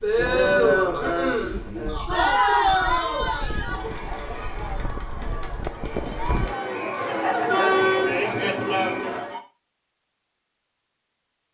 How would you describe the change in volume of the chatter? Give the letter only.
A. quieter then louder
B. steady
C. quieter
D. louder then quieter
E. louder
A.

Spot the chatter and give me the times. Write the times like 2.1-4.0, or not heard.
0.0-9.4.